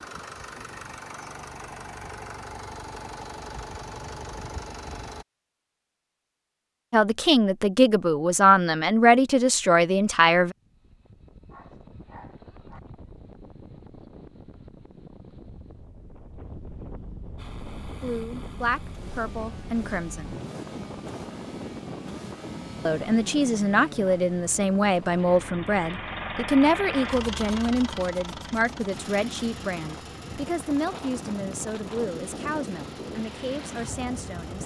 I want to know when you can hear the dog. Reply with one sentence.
The dog can be heard from 11.5 to 12.8 s.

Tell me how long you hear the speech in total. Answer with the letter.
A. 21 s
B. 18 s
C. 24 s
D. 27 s
B.